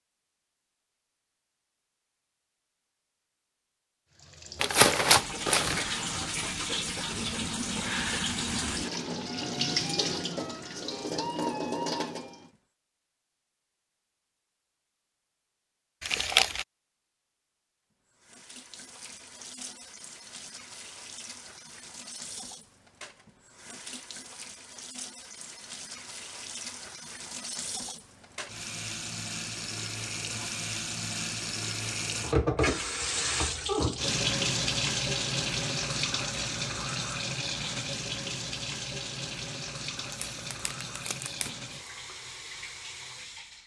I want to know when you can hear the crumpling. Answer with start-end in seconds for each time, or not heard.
4.6-5.8, 16.0-16.6, 40.1-41.8.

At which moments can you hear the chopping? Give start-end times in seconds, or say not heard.
not heard.